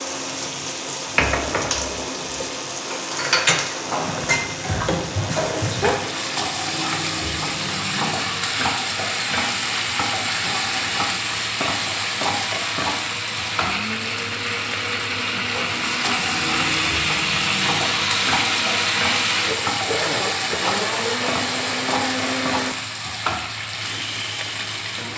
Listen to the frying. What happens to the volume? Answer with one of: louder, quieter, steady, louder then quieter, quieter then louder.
steady.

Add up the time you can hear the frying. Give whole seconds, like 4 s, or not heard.
25 s.